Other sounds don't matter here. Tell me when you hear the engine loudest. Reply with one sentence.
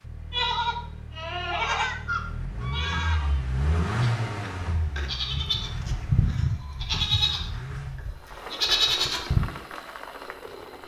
The volume of the engine peaks at 4 seconds.